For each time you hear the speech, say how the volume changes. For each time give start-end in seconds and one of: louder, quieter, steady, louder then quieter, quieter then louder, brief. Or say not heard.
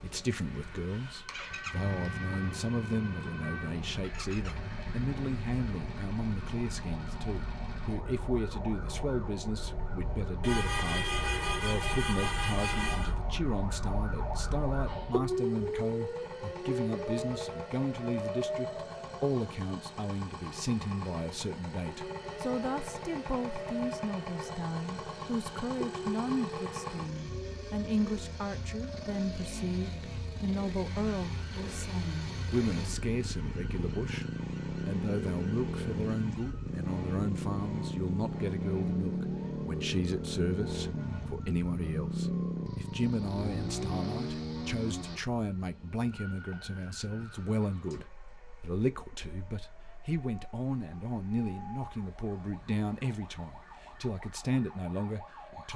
0.0-34.2 steady
34.9-55.7 steady.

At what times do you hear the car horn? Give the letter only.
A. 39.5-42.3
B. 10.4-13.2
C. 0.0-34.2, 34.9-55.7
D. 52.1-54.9
B.